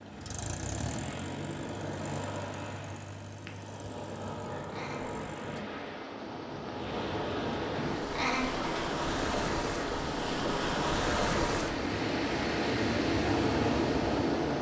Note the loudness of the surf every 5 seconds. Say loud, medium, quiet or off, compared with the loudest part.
medium, medium, loud.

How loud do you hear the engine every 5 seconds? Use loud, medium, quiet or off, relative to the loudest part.
medium, loud, loud.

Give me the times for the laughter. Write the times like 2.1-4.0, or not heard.
4.7-5.2, 8.1-8.9.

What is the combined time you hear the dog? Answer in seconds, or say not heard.
not heard.